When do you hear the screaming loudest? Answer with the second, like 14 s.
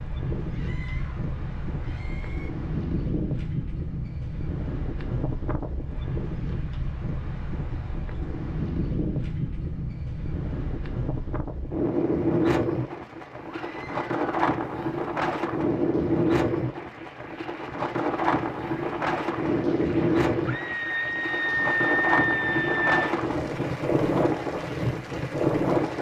22 s.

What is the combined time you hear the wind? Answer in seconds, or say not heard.
26 s.